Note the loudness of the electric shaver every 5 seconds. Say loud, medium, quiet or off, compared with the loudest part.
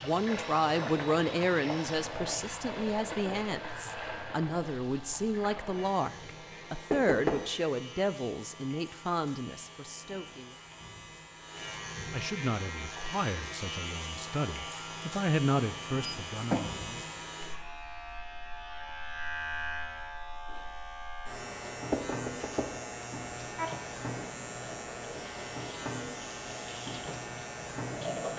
medium, medium, loud, loud, loud, loud.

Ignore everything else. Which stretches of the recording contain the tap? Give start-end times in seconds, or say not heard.
0.0-6.9, 23.6-28.3.